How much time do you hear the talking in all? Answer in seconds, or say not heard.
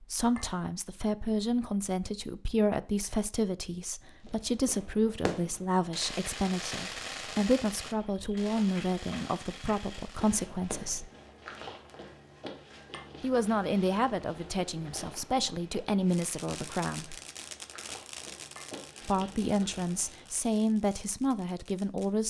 18 s.